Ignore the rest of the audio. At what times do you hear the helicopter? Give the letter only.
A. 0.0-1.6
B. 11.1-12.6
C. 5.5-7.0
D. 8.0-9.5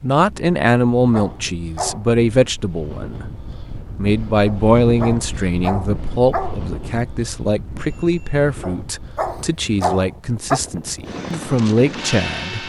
B.